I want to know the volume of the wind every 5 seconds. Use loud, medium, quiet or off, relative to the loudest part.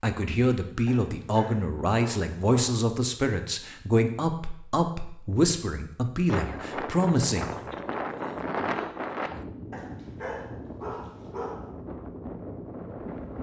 off, loud, medium.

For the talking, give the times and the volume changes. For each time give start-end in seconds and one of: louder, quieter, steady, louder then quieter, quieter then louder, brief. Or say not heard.
0.0-7.5 steady.